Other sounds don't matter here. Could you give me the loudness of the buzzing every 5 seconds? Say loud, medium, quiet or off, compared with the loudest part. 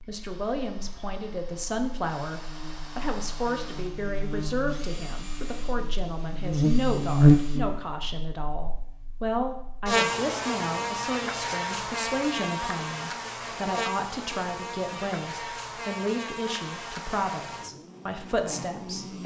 quiet, loud, medium, quiet.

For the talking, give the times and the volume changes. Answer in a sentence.
The talking can be heard from 0.0 to 19.2 s, at a steady volume.